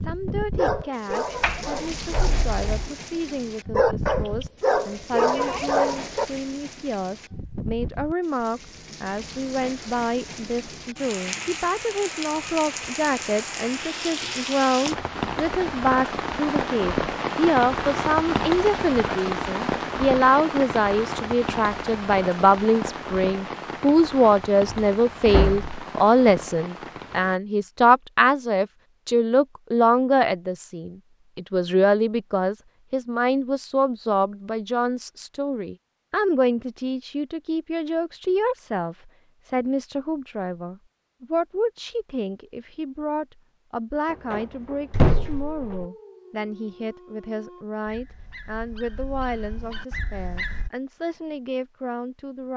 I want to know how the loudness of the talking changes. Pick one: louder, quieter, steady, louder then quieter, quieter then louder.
louder then quieter.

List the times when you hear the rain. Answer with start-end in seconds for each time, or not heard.
0.0-27.4.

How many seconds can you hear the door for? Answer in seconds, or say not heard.
4 s.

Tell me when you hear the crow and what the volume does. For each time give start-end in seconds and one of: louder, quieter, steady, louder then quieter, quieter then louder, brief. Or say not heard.
not heard.